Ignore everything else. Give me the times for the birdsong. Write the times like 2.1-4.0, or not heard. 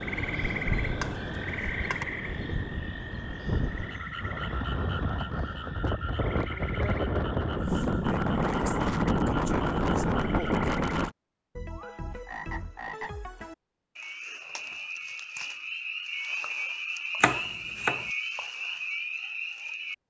not heard.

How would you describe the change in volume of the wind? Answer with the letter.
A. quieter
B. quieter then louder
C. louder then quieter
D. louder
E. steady
D.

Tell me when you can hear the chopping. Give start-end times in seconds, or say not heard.
0.9-2.0, 17.2-18.1.